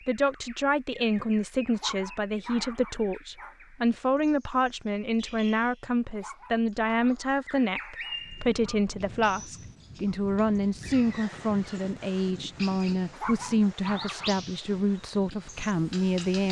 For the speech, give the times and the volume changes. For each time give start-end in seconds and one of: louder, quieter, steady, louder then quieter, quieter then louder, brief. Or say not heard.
0.1-16.4 steady.